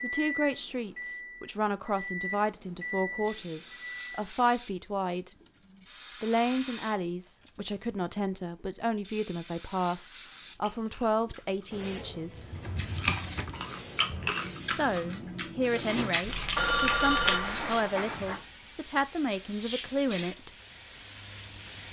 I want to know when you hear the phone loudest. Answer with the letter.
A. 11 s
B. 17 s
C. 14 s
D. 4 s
B.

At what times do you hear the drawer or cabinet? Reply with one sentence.
You can hear the drawer or cabinet from 12.4 to 14.3 s.